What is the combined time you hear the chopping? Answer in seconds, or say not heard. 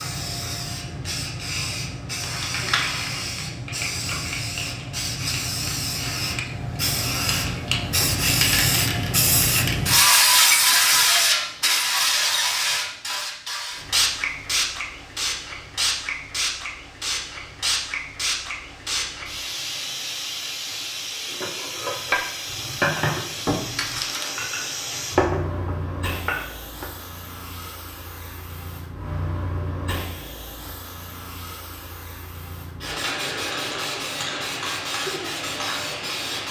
not heard.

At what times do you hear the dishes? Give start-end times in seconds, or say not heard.
21.3-26.9.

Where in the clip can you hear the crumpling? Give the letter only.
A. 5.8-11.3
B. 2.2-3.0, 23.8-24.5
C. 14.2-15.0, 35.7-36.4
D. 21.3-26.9
B.